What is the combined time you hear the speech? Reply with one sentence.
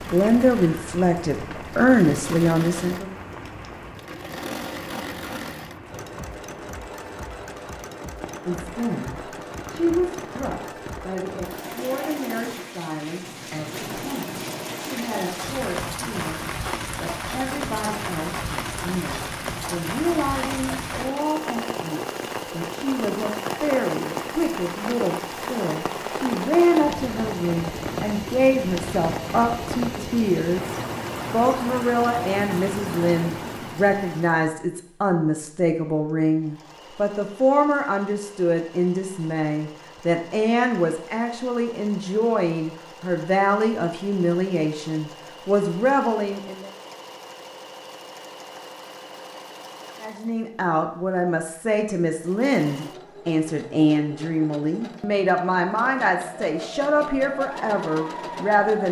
The speech can be heard for 50 seconds in total.